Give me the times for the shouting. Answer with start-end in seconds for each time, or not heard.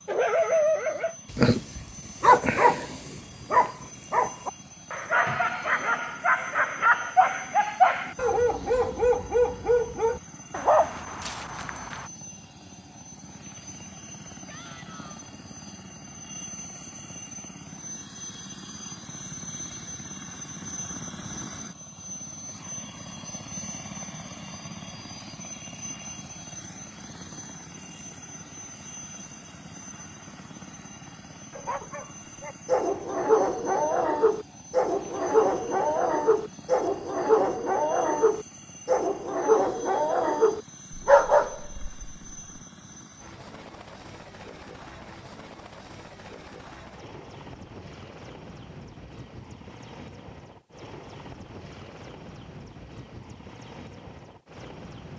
14.4-15.2.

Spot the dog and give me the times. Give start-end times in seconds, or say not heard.
0.1-12.1, 31.6-42.1.